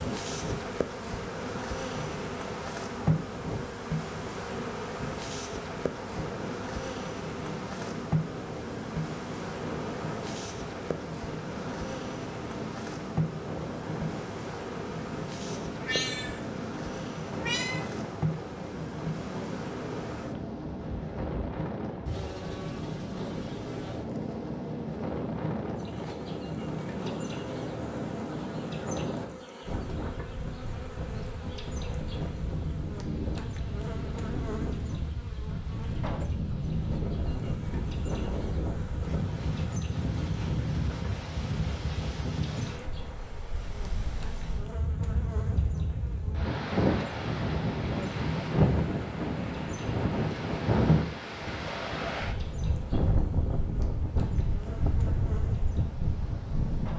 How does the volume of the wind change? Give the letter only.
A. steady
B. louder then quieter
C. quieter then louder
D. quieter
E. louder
E.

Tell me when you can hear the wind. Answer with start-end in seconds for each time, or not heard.
0.0-56.9.